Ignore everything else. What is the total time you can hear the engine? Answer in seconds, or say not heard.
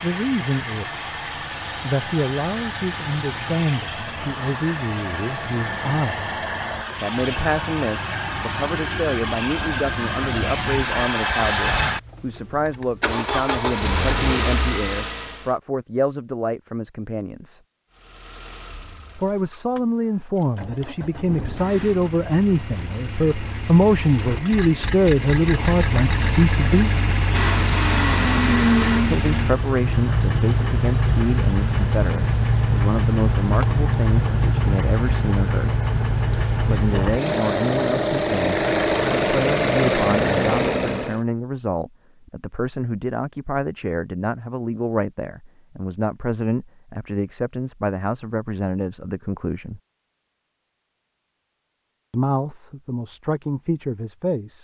39 s.